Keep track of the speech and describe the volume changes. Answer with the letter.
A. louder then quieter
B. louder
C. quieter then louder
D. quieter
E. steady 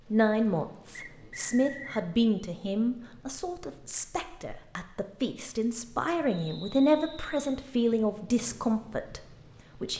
C.